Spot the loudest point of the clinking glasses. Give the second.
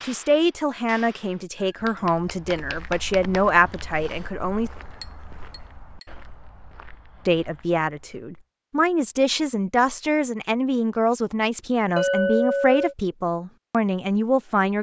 12 s.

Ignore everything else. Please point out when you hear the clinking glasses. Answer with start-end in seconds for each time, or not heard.
1.6-2.6, 5.0-6.0, 11.9-12.9.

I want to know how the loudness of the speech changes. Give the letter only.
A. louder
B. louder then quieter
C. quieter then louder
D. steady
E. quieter
D.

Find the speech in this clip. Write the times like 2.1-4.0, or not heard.
0.0-4.7, 7.2-14.7.